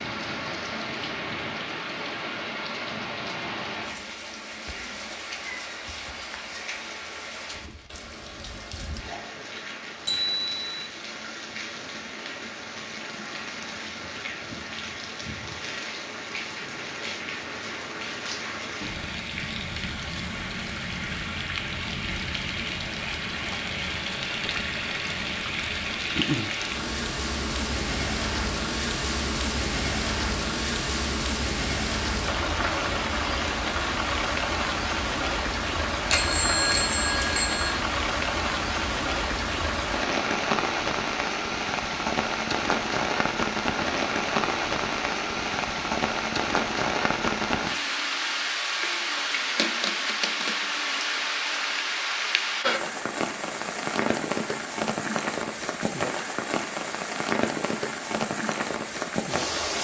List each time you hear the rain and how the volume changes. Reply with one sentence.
You can hear the rain from 0.0 to 59.7 s, getting louder.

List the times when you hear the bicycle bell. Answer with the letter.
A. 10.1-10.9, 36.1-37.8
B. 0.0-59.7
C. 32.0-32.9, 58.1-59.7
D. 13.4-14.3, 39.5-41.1
A.